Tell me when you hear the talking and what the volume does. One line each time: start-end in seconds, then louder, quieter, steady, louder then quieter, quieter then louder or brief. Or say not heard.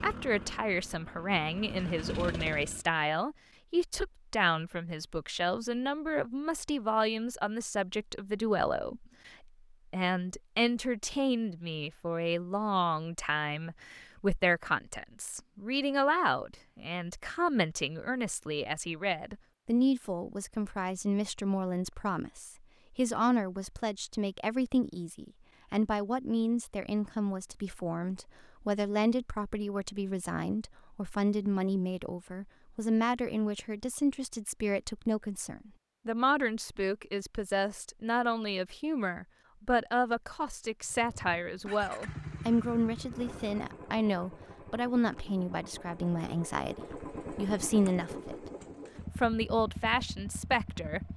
0.0-48.5 steady
49.1-51.0 brief.